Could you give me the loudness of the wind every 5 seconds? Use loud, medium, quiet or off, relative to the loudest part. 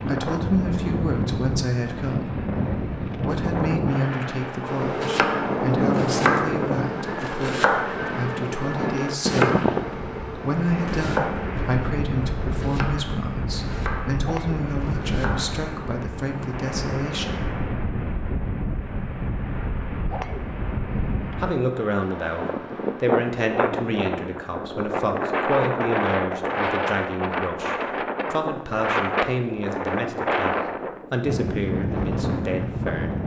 loud, loud, medium, medium, loud, loud, loud.